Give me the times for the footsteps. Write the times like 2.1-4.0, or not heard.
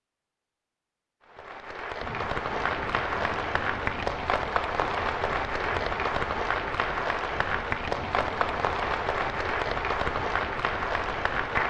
not heard.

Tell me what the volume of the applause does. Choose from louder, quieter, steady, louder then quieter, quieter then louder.
steady.